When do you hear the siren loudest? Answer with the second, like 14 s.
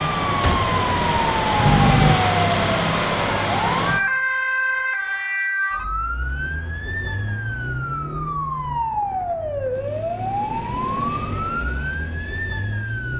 2 s.